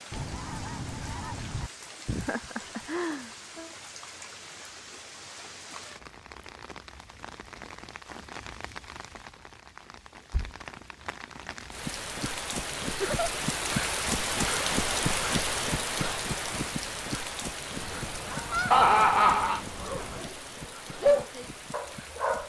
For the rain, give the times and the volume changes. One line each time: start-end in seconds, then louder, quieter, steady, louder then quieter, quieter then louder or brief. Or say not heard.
0.0-22.4 louder then quieter.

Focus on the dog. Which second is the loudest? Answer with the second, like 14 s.
21 s.